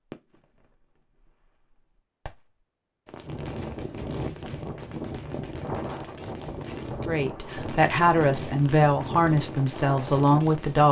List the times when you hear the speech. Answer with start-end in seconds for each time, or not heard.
7.0-10.8.